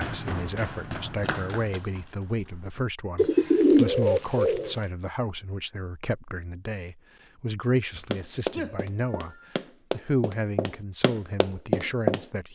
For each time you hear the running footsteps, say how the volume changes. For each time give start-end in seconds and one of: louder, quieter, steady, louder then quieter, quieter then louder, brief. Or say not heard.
0.0-2.9 brief
8.1-12.2 louder.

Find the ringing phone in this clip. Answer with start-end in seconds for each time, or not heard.
8.0-9.5.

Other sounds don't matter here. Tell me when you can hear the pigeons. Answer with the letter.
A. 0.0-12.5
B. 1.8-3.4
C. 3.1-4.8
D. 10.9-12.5
C.